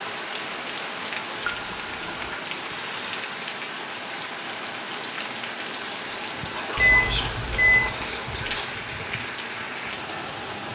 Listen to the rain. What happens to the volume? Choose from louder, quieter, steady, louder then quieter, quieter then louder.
steady.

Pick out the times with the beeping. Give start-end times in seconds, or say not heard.
1.4-2.4, 6.8-8.0.